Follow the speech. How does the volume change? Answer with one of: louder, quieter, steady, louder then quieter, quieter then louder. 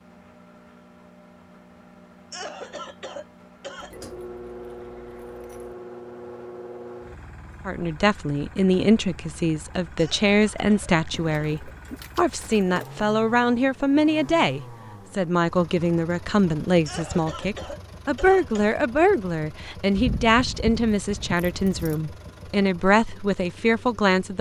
steady.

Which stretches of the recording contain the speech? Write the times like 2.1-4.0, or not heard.
7.7-24.3.